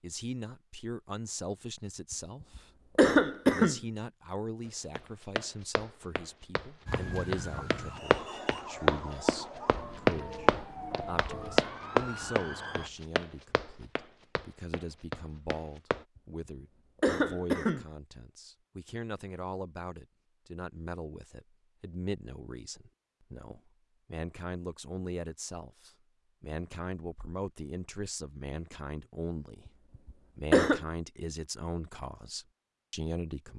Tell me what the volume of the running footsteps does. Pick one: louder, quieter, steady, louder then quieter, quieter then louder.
louder then quieter.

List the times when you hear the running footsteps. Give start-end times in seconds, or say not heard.
4.7-16.1.